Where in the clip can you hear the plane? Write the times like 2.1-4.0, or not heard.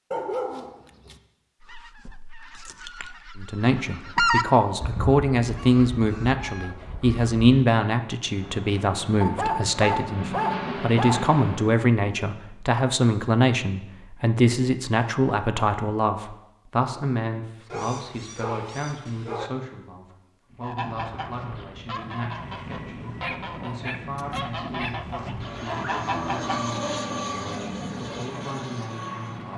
8.2-11.8, 20.4-29.5.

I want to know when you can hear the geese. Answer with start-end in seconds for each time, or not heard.
1.6-7.4, 20.6-26.6.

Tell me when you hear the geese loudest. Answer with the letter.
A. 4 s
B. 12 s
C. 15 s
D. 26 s
A.